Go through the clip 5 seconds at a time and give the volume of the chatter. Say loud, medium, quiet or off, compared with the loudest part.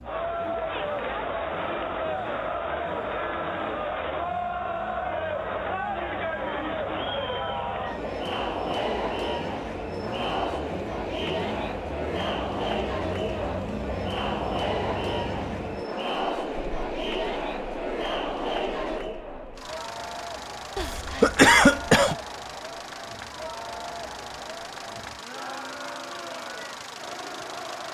loud, loud, loud, loud, medium, medium.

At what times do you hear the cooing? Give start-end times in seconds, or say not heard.
not heard.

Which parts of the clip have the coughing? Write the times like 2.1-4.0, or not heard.
20.8-22.1.